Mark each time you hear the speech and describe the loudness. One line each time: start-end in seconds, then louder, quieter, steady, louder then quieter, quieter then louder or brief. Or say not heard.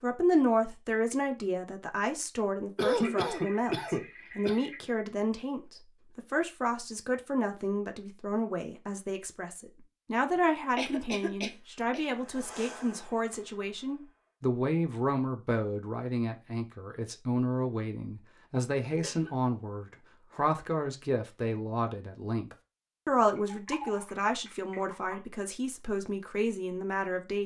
0.0-27.4 steady.